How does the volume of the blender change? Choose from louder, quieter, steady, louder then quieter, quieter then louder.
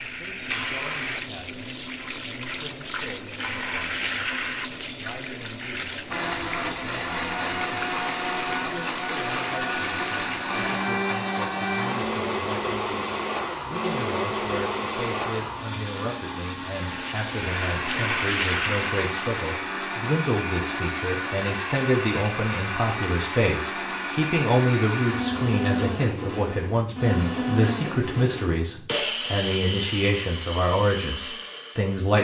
steady.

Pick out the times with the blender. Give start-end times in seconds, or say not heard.
6.1-32.2.